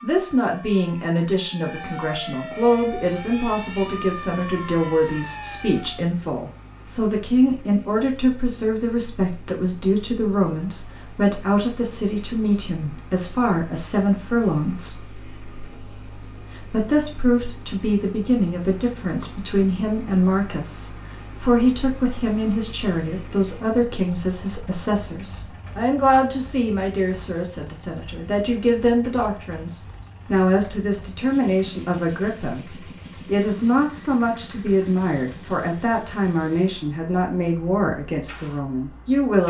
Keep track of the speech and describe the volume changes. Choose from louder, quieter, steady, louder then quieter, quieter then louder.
steady.